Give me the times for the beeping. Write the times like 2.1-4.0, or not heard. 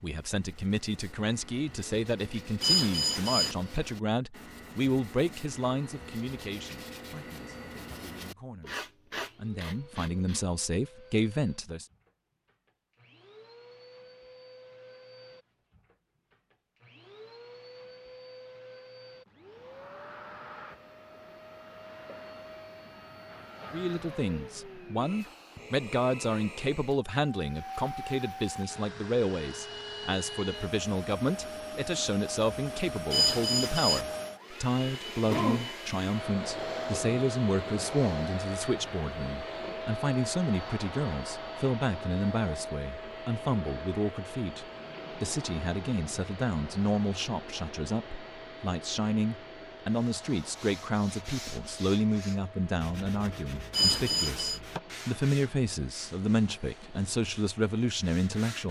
2.6-3.5, 33.1-34.0, 53.7-54.6.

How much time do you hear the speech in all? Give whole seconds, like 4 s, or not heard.
47 s.